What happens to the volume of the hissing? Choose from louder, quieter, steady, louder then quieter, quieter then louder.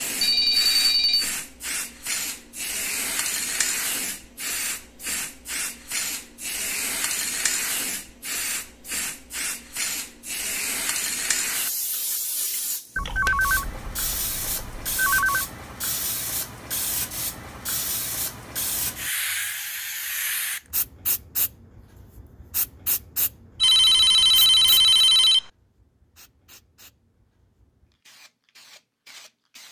quieter.